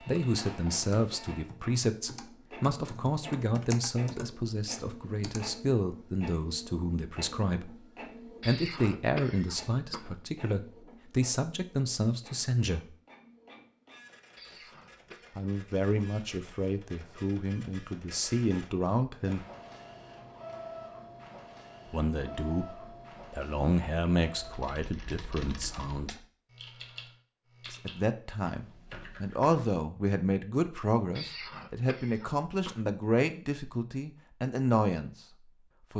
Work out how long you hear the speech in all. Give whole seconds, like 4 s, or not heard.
28 s.